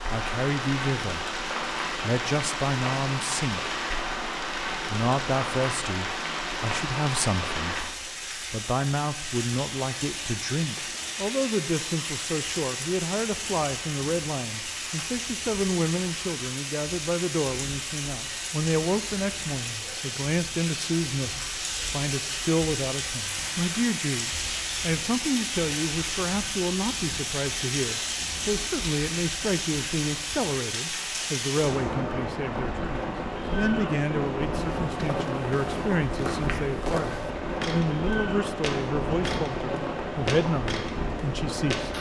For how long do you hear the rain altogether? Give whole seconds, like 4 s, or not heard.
42 s.